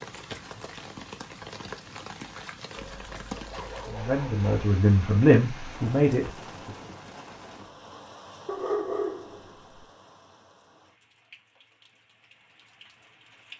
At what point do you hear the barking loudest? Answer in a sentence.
The loudest moment of the barking is at 9 seconds.